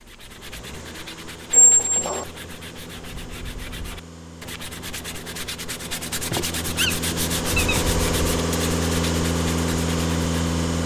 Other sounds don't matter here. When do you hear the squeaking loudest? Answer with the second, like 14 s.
2 s.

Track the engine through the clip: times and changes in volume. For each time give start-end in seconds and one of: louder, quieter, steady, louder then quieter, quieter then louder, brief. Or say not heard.
0.0-10.8 louder.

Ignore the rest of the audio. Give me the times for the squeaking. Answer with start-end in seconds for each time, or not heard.
1.5-2.2, 6.2-7.8.